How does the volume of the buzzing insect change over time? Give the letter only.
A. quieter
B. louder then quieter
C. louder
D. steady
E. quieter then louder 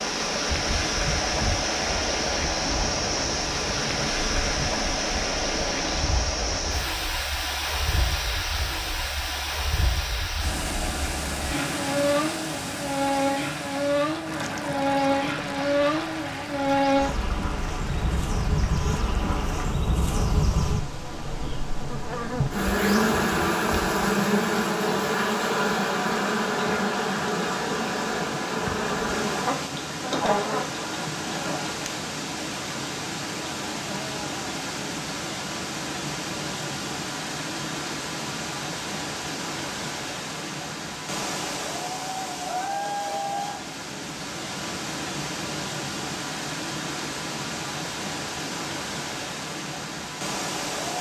C.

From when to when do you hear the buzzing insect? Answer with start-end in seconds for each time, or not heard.
0.0-31.8.